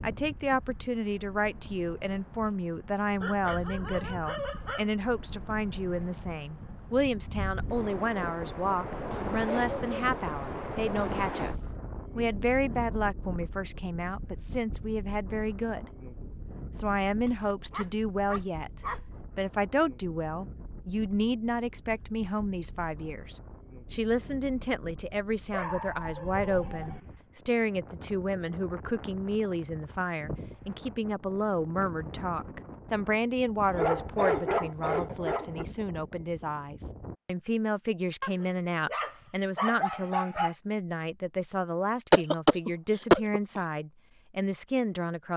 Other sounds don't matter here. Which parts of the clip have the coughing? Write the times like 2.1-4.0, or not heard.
42.1-43.4.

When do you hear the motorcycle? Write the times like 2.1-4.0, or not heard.
not heard.